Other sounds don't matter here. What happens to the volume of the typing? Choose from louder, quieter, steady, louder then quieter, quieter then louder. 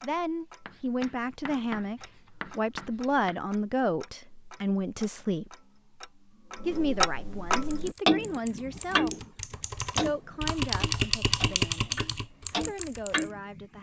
louder then quieter.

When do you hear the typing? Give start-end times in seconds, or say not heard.
7.6-13.3.